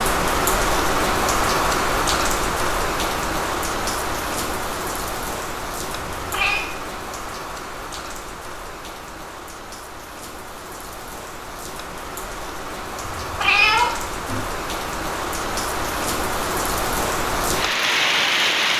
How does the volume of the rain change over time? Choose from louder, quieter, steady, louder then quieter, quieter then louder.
quieter then louder.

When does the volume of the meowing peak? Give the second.
14 s.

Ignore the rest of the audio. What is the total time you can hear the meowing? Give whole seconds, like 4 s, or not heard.
2 s.